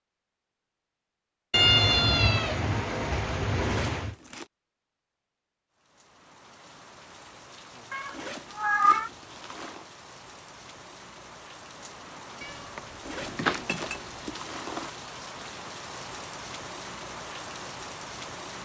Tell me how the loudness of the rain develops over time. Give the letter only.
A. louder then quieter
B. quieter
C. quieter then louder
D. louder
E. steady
D.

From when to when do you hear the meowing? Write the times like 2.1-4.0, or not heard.
1.5-4.2, 7.9-9.1, 12.4-14.3.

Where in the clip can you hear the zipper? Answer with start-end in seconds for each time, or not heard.
3.6-4.5, 8.1-9.8, 13.0-14.9.